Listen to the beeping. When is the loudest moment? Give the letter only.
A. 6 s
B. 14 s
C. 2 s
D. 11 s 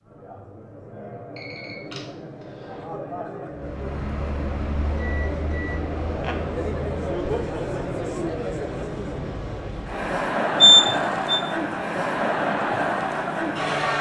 D.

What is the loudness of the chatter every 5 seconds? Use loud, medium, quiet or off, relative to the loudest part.
quiet, medium, loud.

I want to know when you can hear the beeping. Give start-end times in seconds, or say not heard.
1.4-2.9, 5.0-6.3, 10.6-11.4.